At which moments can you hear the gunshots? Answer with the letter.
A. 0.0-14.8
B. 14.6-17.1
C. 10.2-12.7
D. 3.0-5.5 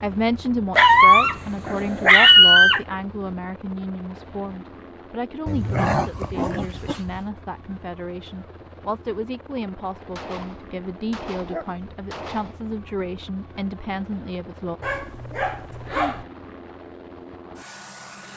C.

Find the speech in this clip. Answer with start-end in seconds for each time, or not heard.
0.0-14.8.